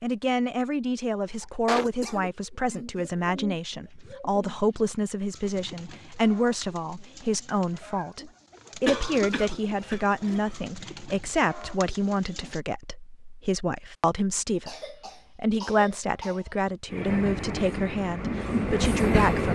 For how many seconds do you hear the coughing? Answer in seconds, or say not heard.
5 s.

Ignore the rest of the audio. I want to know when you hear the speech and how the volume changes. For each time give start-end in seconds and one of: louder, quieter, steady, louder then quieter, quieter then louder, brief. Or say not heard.
0.0-19.4 steady.